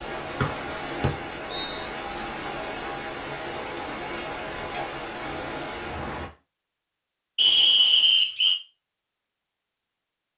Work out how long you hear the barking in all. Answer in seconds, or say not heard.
not heard.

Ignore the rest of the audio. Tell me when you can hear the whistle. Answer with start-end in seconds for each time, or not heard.
0.4-1.9, 7.3-8.6.